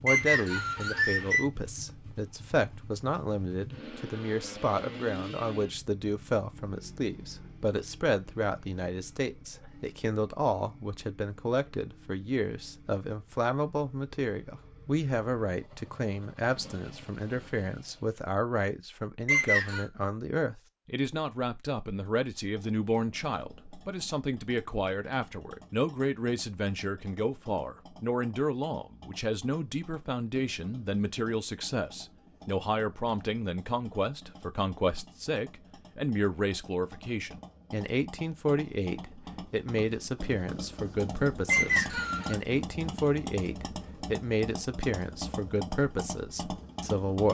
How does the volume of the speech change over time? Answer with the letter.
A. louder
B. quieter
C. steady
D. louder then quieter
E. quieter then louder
C.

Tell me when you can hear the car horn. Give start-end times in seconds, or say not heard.
not heard.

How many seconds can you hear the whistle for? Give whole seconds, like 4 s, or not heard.
3 s.